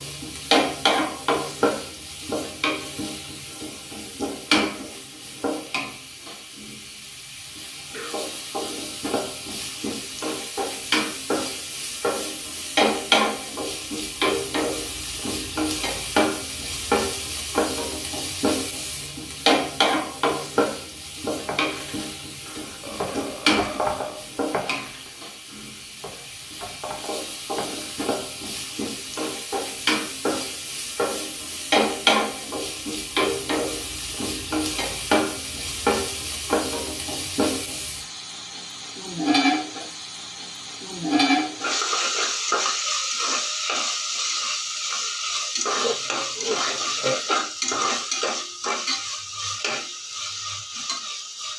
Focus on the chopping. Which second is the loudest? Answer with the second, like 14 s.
24 s.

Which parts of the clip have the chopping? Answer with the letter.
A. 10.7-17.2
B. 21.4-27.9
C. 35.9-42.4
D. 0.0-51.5
B.